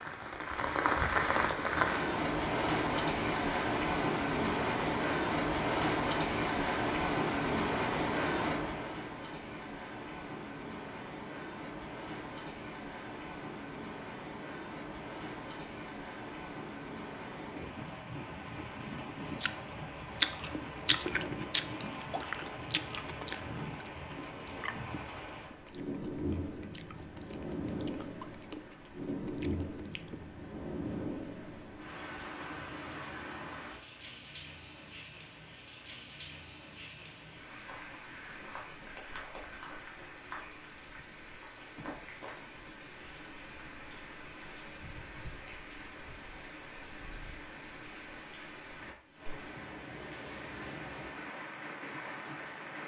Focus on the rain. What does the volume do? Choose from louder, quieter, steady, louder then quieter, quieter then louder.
quieter.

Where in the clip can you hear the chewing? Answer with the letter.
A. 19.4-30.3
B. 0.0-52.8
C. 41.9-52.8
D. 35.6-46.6
A.